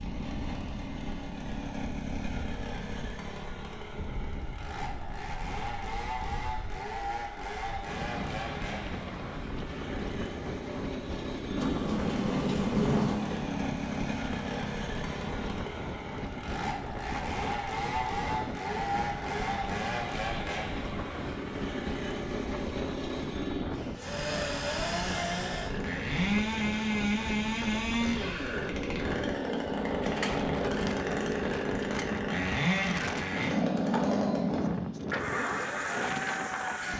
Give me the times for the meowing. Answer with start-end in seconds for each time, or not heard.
not heard.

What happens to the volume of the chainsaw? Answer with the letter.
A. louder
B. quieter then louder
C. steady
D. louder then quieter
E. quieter
A.